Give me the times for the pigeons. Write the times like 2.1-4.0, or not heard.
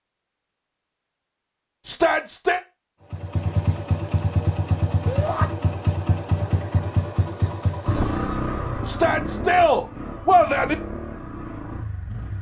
not heard.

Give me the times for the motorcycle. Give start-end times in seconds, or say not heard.
3.1-12.3.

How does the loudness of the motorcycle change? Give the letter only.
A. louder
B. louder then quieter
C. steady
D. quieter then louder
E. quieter
E.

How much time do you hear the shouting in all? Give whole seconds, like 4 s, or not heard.
3 s.